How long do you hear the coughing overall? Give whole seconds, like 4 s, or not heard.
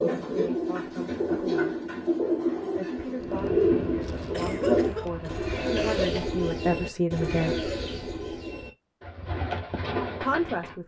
2 s.